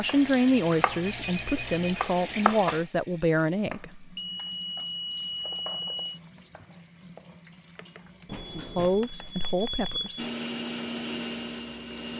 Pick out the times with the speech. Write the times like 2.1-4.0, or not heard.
0.0-4.1, 8.6-10.2.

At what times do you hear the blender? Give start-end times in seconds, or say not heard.
10.2-12.1.